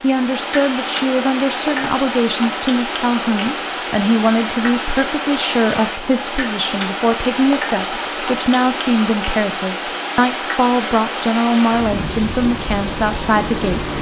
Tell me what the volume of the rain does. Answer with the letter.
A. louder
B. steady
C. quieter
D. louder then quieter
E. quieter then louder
B.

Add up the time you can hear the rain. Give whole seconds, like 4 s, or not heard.
14 s.